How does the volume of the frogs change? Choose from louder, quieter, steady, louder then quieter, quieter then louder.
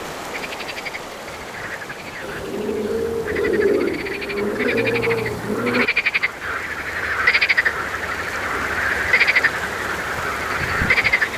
louder.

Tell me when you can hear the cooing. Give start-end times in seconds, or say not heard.
2.2-6.2.